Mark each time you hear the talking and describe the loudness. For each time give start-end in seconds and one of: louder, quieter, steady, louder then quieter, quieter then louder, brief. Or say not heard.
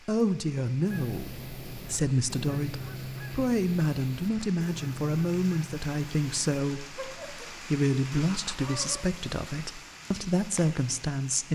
0.1-11.5 steady.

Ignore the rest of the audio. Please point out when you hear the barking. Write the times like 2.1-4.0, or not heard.
not heard.